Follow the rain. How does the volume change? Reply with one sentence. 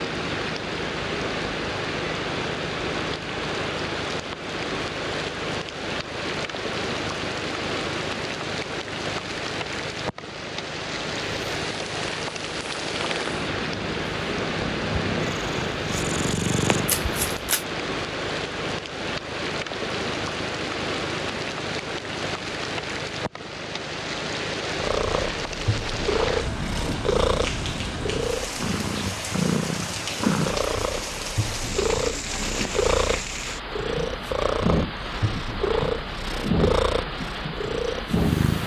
The volume of the rain stays about the same.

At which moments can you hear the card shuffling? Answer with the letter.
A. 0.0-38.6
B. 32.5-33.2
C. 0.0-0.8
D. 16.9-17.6
D.